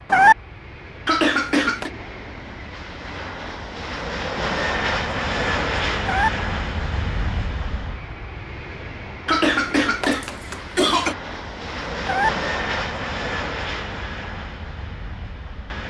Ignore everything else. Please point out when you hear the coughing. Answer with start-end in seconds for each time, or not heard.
1.1-1.9, 9.2-11.2.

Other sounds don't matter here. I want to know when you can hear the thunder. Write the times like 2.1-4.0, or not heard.
not heard.